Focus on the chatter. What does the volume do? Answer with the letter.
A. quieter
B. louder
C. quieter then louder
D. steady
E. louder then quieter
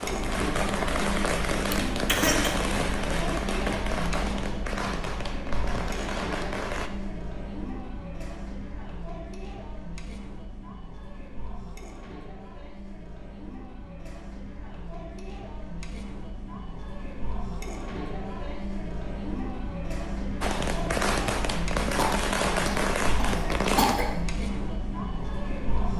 C.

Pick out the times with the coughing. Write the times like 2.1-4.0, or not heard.
1.7-2.5, 21.9-24.1.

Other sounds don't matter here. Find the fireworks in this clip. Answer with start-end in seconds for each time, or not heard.
0.0-6.9, 20.4-23.9.